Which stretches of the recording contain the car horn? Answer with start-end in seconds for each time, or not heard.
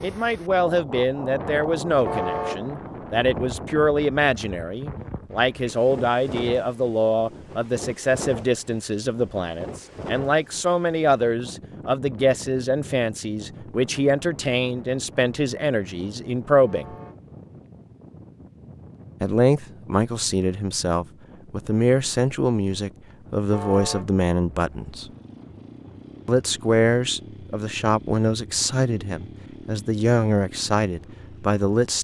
2.0-2.6, 16.6-17.2, 23.5-24.1.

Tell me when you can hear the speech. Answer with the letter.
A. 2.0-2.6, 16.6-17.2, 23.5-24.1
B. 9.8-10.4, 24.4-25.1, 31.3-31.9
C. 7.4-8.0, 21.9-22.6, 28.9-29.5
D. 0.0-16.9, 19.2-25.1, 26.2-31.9
D.